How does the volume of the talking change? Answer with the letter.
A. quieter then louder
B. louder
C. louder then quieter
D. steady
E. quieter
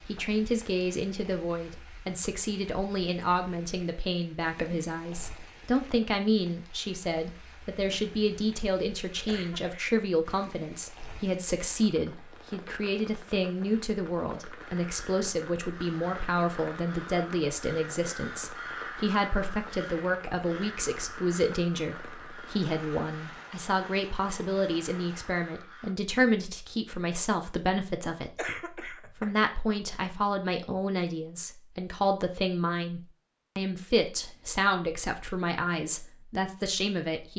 D.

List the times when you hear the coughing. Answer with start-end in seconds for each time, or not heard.
9.2-9.8, 28.4-29.4.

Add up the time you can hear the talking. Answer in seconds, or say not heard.
37 s.